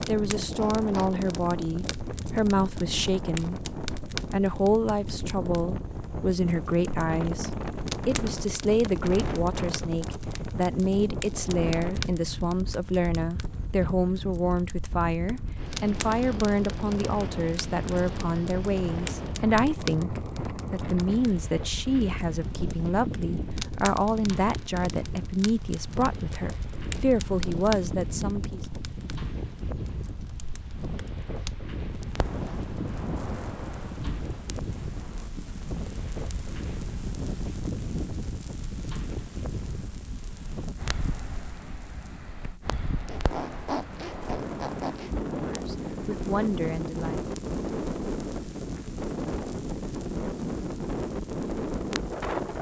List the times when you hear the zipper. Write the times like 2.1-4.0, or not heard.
0.3-1.1, 43.0-45.1.